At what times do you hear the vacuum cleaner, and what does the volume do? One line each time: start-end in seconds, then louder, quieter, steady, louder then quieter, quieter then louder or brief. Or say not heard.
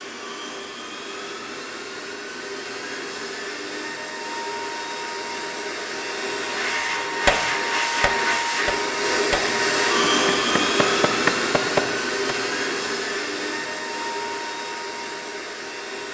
0.0-16.0 louder then quieter.